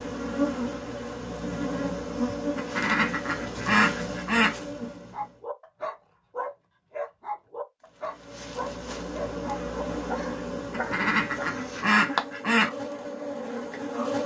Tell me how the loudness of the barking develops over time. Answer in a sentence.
The loudness of the barking stays about the same.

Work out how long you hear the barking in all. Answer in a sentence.
You can hear the barking for 6 seconds altogether.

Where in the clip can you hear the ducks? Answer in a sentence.
You can hear the ducks from 2.5 to 4.5 s and from 10.7 to 12.7 s.